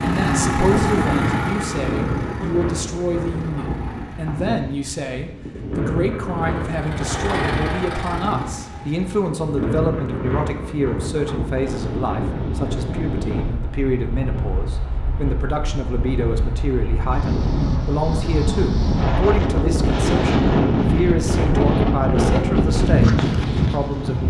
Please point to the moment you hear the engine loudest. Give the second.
1 s.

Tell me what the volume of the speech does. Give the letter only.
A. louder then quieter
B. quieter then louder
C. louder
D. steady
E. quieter
D.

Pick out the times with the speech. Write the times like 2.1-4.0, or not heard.
0.0-24.2.